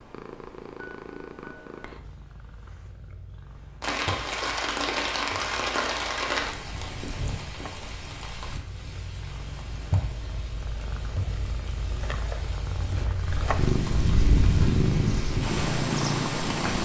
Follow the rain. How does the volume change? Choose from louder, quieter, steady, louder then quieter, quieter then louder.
quieter then louder.